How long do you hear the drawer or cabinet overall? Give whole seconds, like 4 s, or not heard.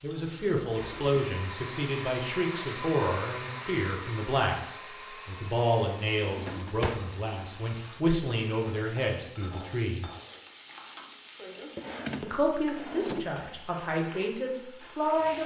3 s.